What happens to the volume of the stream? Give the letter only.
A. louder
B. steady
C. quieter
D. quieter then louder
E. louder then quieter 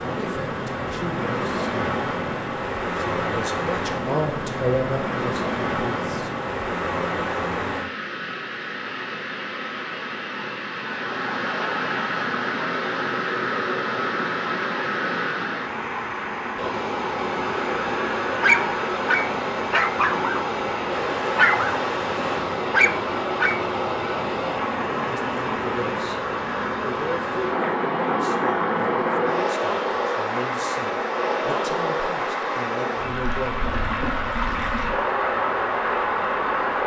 B.